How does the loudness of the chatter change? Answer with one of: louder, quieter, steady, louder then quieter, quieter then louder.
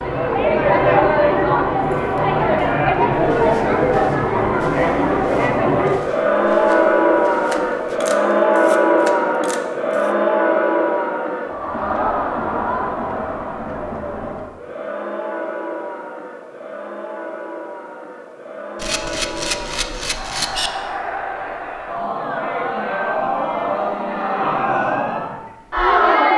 quieter then louder.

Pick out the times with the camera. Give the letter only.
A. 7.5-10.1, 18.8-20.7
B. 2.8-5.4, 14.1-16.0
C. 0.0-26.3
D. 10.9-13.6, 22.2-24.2
A.